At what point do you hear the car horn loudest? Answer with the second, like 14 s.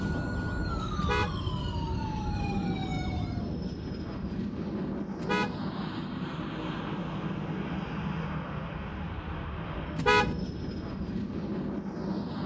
10 s.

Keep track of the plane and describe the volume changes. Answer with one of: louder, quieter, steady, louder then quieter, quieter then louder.
steady.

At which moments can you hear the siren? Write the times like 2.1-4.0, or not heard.
0.0-3.5.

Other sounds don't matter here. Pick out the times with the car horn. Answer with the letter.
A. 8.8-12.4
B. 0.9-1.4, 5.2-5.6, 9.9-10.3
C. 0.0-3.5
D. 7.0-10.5
B.